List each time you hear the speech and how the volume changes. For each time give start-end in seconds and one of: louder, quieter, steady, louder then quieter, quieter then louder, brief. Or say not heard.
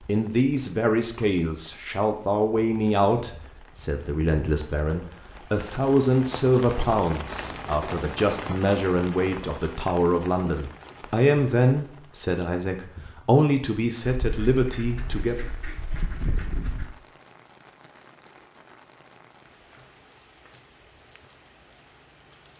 0.0-15.4 steady.